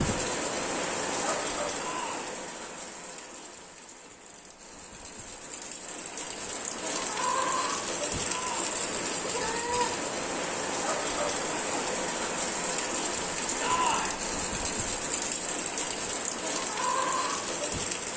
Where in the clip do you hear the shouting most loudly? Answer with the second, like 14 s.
14 s.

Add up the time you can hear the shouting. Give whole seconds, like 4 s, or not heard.
2 s.